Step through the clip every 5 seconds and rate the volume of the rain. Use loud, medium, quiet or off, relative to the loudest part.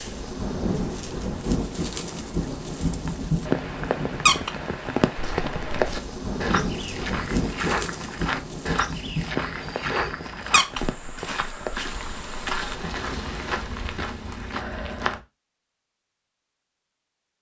loud, loud, medium, off.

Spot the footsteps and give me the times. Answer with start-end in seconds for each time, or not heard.
5.1-15.2.